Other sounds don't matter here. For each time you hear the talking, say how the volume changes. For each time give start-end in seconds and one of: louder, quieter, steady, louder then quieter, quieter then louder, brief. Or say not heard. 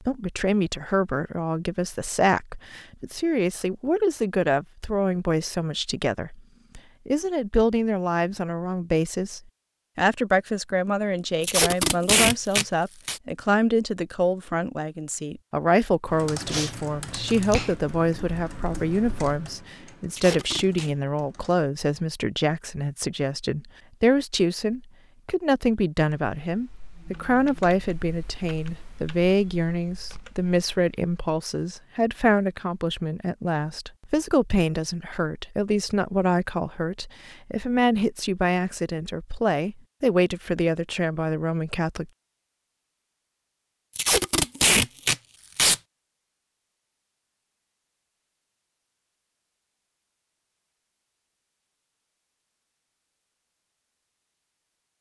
0.1-42.0 steady.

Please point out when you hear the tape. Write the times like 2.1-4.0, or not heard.
11.4-13.2, 20.1-20.9, 44.0-45.8.